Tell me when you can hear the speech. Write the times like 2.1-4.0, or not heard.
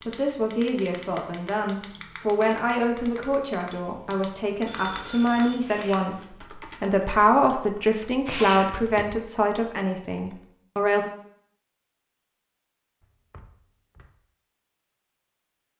0.1-11.1.